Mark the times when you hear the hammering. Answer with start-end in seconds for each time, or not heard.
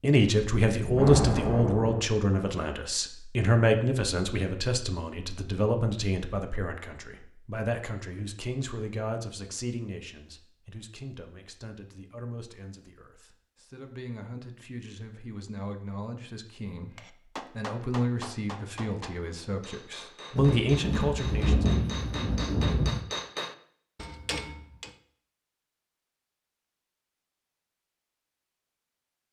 16.9-24.9.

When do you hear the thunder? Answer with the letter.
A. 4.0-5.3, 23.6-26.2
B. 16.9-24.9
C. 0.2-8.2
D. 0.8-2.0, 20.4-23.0
D.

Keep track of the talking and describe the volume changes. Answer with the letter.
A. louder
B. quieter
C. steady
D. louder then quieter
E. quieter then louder
E.